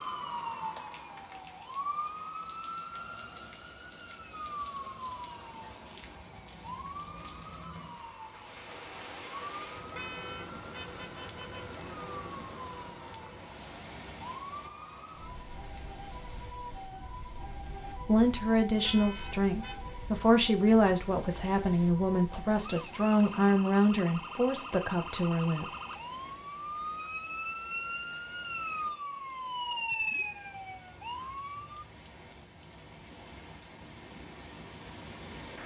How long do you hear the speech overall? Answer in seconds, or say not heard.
8 s.